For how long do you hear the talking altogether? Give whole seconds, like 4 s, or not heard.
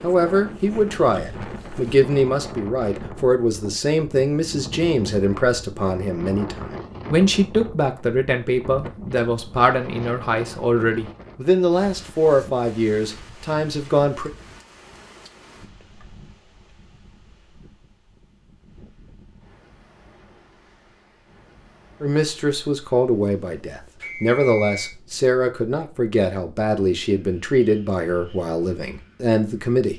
22 s.